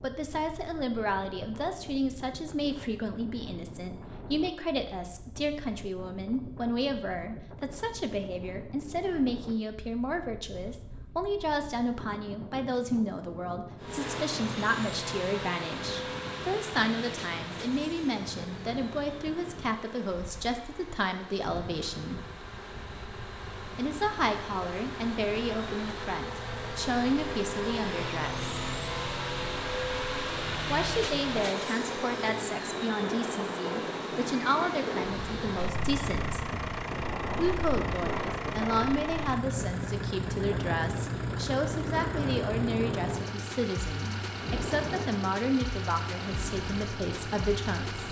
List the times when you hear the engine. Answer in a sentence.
The engine can be heard from 13.8 to 48.0 s.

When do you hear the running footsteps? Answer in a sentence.
You can't hear the running footsteps here.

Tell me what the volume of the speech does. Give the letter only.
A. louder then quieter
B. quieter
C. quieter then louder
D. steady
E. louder
D.